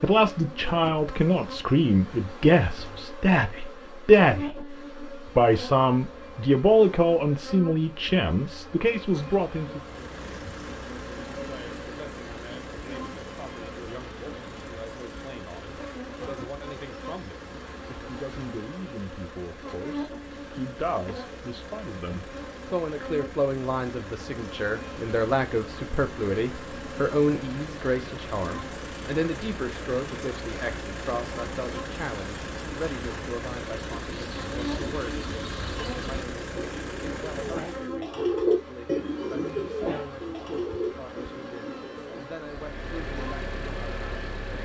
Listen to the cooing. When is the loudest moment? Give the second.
38 s.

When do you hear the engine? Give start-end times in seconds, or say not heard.
9.7-38.0, 42.4-44.6.